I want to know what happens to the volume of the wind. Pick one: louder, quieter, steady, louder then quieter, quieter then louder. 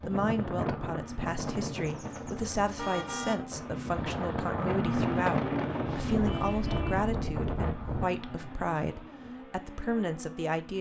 quieter then louder.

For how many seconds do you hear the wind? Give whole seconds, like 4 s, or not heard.
8 s.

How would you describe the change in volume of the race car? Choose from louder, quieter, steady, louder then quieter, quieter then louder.
louder then quieter.